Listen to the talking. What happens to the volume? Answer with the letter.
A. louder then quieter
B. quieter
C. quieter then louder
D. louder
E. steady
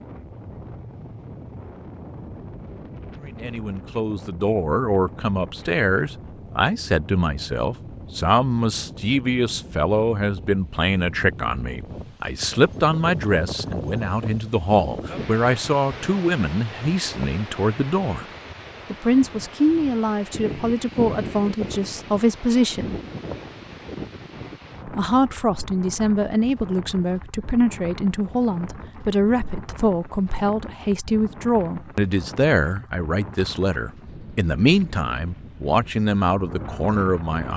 E.